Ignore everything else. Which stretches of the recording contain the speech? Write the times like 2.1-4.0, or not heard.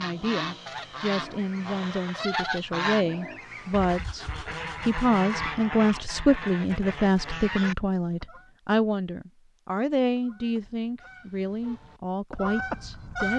0.0-13.3.